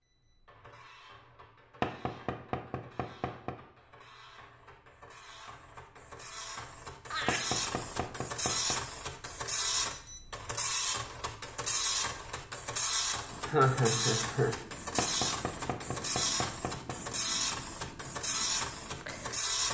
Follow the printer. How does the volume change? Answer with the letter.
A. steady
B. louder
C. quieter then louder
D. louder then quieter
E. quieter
B.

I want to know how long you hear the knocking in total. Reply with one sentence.
You can hear the knocking for 5 seconds altogether.